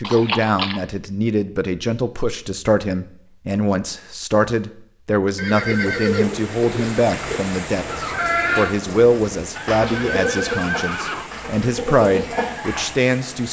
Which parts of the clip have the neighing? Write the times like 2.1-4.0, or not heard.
0.0-0.8, 5.3-7.4, 9.6-11.3.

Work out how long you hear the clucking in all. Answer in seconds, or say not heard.
5 s.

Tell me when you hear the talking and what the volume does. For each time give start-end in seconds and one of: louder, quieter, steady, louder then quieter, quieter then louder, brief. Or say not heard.
0.0-13.4 steady.